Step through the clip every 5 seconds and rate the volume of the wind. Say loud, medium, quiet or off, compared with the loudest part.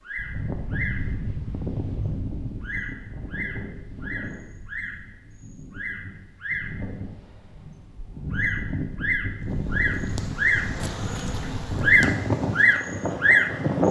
medium, medium, loud.